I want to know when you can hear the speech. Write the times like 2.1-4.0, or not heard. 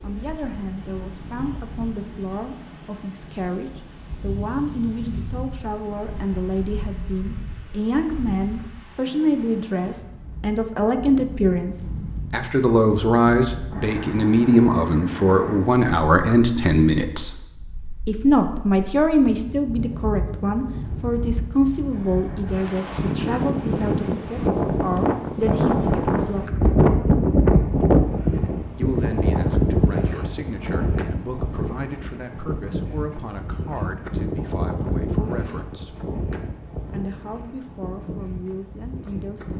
0.0-17.4, 18.1-26.6, 28.8-36.0, 36.9-39.5.